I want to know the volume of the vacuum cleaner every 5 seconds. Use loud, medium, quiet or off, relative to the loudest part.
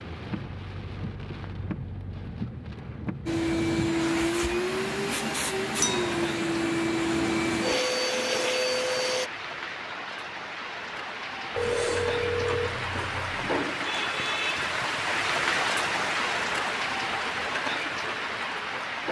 loud, loud, off, off.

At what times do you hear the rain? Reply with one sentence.
You can hear the rain from 0.0 to 19.0 s.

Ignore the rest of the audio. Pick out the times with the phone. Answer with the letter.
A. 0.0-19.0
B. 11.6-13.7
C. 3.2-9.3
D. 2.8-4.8
B.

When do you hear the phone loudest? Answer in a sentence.
The volume of the phone peaks at 12 seconds.